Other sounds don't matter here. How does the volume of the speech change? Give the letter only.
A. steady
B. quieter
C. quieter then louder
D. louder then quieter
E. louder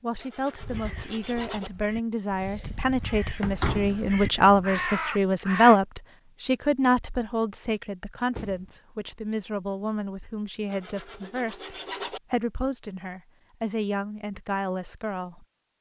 D.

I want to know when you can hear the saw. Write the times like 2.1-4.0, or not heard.
0.1-1.7, 10.7-12.2.